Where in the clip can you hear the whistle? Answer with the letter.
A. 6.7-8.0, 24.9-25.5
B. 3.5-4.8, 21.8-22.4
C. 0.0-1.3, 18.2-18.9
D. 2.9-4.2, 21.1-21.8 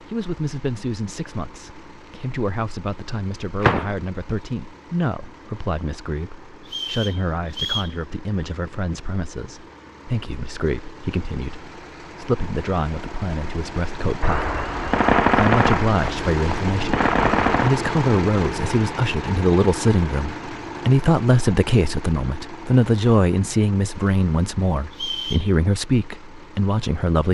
A.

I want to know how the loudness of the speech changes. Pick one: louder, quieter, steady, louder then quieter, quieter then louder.
louder.